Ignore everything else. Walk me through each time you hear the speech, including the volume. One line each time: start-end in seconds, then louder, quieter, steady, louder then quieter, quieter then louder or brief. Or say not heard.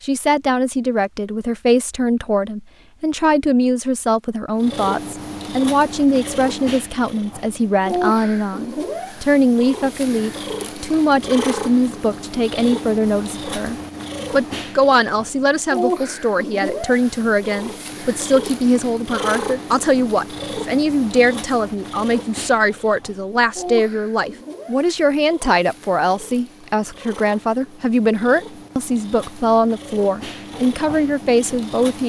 0.0-32.0 steady.